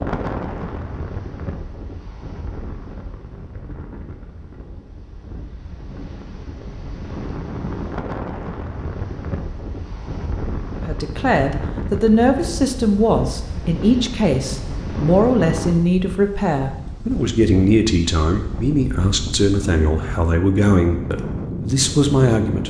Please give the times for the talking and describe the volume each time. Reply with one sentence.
The talking can be heard from 10.8 to 22.6 s, at a steady volume.